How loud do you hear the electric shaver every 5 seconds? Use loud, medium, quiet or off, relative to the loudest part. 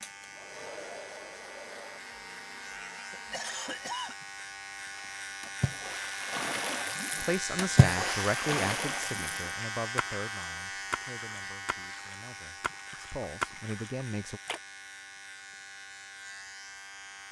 medium, loud, medium, medium.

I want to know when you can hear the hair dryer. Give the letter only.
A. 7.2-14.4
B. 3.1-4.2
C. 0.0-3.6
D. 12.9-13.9
C.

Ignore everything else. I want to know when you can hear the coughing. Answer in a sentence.
The coughing can be heard from 3.1 to 4.2 s.